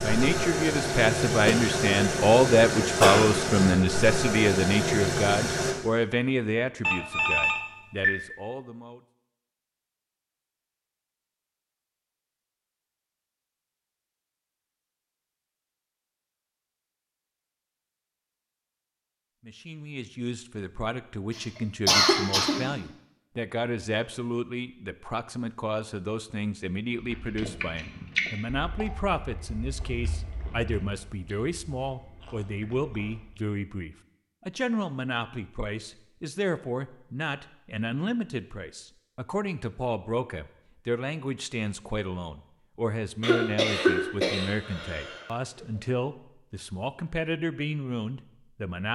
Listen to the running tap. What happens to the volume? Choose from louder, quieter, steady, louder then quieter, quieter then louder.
steady.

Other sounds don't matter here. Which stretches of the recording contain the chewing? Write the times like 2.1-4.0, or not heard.
26.9-33.4.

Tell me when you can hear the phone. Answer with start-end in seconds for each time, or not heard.
6.8-8.1.